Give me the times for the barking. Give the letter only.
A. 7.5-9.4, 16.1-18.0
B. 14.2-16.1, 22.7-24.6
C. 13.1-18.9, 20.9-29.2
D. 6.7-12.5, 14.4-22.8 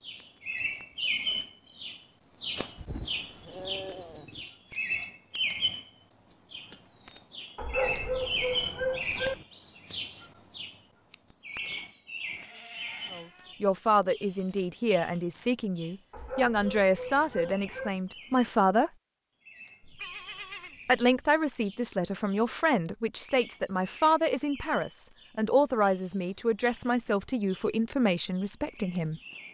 A.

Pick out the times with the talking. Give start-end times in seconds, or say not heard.
13.1-18.9, 20.9-29.2.